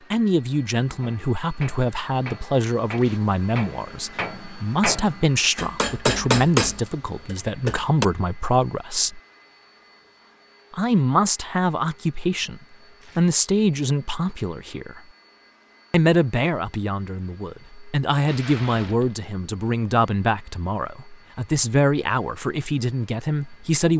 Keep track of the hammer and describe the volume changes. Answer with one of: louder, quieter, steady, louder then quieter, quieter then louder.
louder.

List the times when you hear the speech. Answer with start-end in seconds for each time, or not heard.
0.1-9.2, 10.7-15.0, 15.9-23.9.